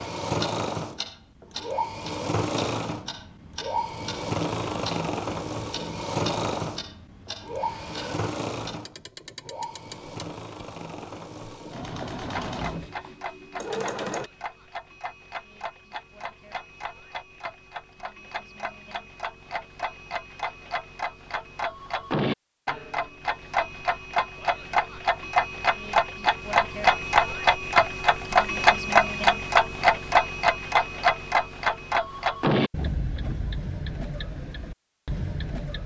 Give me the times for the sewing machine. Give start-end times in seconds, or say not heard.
0.0-14.3.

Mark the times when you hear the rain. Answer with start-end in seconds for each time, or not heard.
not heard.